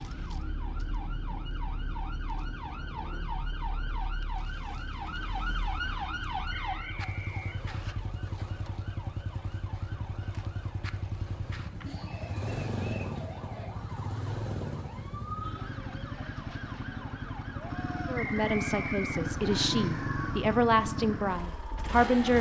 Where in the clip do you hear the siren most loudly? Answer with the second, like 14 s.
6 s.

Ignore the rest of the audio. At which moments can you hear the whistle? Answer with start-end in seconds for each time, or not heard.
6.5-8.0, 18.1-19.7.